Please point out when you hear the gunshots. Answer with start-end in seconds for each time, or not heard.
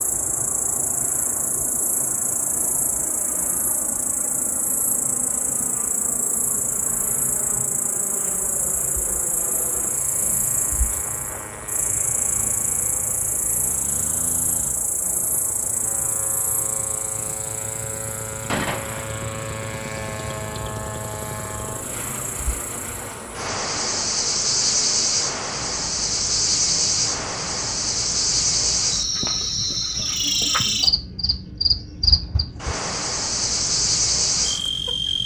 18.4-19.1.